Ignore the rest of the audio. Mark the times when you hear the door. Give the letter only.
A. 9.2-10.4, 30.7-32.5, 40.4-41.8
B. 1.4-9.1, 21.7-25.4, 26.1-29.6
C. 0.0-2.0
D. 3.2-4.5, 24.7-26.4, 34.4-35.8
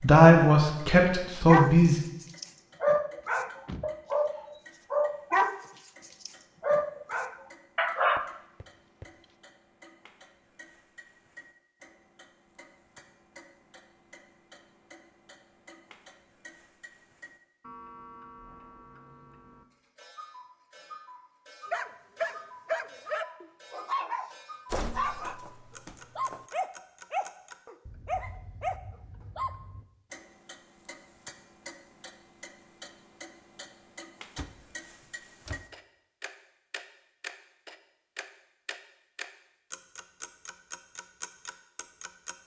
D.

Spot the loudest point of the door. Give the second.
25 s.